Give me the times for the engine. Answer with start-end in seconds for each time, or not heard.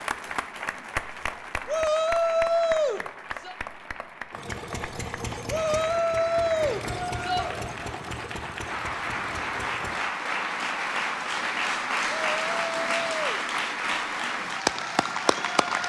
4.3-10.0.